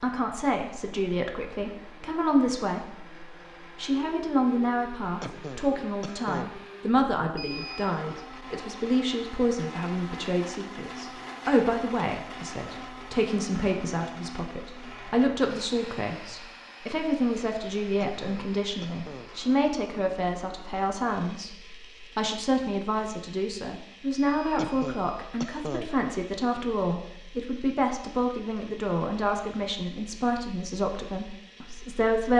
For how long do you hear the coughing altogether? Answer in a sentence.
The coughing can be heard for 4 seconds in total.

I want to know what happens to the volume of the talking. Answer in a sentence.
The volume of the talking stays about the same.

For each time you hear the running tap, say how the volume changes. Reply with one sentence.
The running tap can't be heard in this clip.